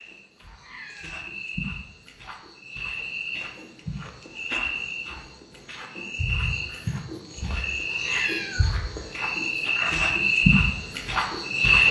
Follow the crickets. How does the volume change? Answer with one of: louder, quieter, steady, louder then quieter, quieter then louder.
louder.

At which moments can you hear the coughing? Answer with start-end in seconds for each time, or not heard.
not heard.